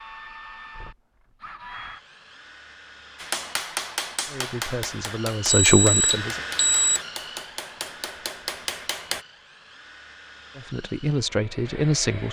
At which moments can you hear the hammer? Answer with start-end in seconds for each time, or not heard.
3.1-9.2.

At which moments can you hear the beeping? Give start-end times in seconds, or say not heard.
5.5-7.0.